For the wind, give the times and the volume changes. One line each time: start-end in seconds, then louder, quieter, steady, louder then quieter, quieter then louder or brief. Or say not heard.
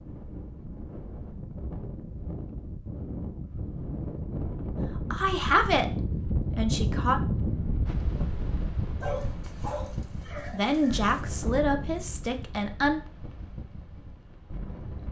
0.0-15.0 louder then quieter.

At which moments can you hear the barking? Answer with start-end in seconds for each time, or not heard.
9.0-11.2.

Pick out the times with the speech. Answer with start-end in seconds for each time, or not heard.
5.1-7.2, 10.5-13.0.